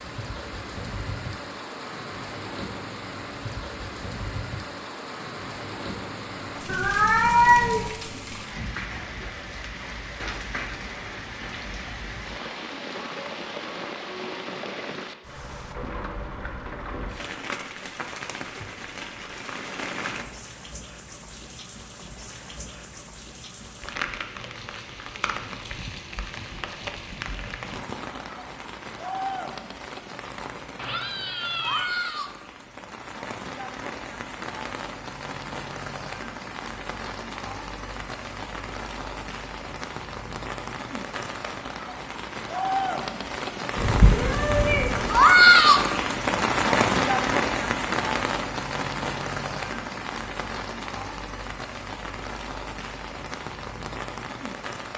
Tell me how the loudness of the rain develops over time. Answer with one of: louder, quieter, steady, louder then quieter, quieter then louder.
louder.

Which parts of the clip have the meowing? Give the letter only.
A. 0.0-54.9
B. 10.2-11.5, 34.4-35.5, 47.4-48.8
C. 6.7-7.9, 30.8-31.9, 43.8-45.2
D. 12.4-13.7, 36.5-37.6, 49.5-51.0
C.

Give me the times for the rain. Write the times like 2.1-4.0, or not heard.
0.0-54.9.